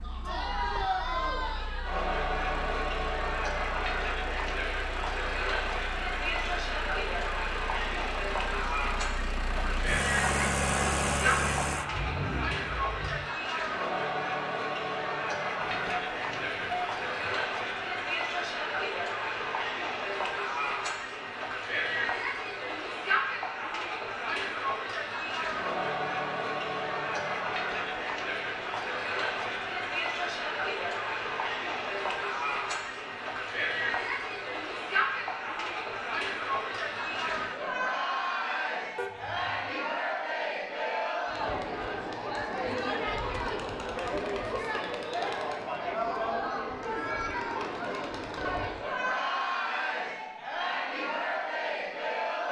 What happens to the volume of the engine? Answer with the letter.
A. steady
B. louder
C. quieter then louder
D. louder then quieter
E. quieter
B.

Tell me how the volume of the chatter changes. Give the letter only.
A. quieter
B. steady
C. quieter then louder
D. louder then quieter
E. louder
B.